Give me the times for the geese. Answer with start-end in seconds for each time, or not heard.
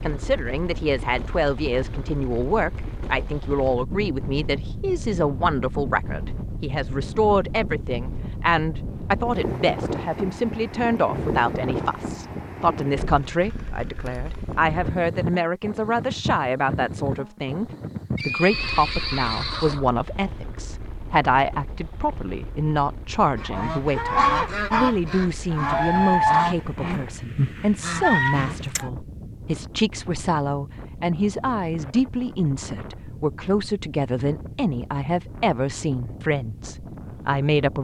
23.4-28.9.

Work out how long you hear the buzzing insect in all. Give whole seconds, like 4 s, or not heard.
not heard.